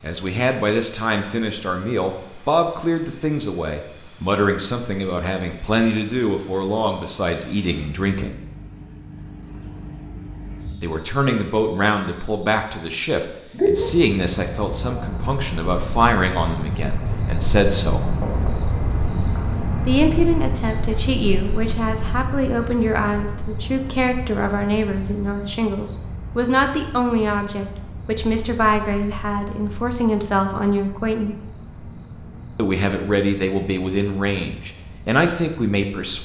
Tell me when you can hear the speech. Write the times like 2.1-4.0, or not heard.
0.0-8.3, 10.8-18.1, 19.9-31.4, 32.5-36.2.